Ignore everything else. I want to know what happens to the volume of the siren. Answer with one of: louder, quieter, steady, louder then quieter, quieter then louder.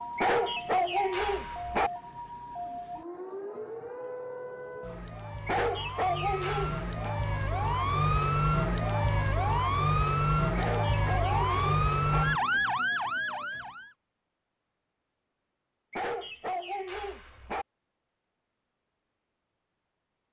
louder.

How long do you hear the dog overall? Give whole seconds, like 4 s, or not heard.
7 s.